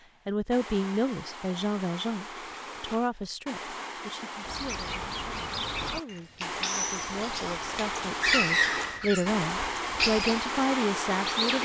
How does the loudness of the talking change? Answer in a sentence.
The volume of the talking goes down, then up.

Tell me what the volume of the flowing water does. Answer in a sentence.
The volume of the flowing water goes up.